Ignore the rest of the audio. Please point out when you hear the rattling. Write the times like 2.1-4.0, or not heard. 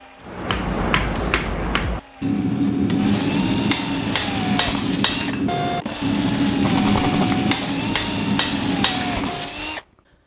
6.6-7.4.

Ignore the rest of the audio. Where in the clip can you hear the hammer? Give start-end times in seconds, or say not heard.
0.2-9.6.